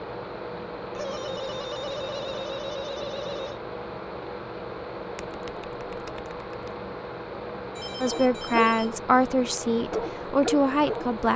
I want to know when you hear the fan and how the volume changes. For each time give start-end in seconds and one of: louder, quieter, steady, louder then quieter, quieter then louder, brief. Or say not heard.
0.0-11.3 steady.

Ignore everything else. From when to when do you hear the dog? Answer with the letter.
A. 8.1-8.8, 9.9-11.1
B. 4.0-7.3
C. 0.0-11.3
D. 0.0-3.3
A.